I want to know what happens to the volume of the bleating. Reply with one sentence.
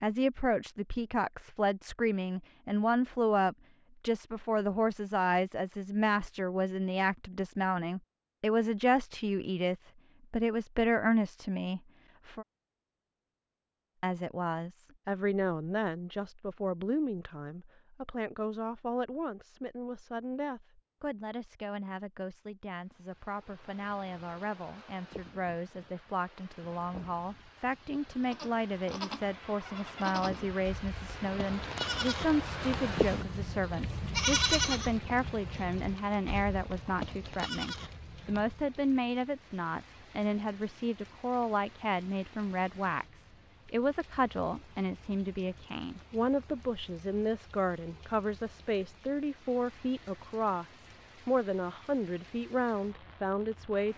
The loudness of the bleating goes up, then down.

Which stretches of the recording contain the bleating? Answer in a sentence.
The bleating can be heard from 28.2 to 38.7 s.